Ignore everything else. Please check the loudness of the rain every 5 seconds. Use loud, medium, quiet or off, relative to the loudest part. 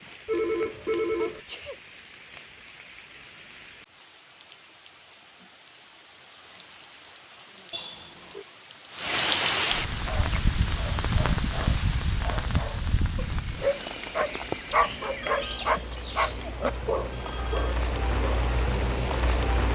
quiet, loud, loud, loud.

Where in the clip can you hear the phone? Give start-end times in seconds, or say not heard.
0.2-1.4, 7.7-8.4, 15.2-17.9.